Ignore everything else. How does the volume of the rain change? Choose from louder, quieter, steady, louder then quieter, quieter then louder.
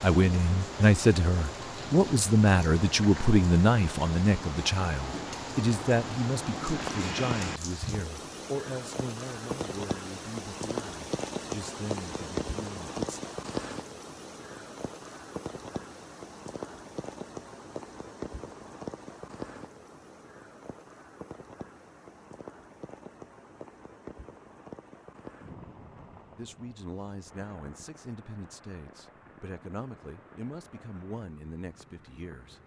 quieter.